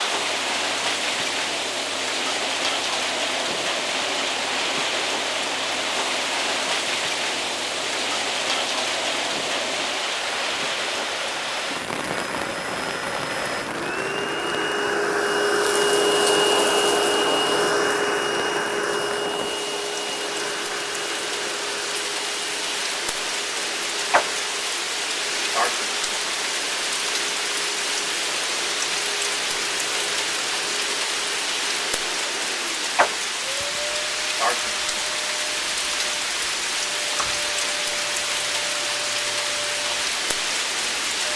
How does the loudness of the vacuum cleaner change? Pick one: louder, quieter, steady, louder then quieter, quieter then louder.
louder then quieter.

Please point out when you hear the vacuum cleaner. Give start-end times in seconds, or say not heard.
0.0-41.3.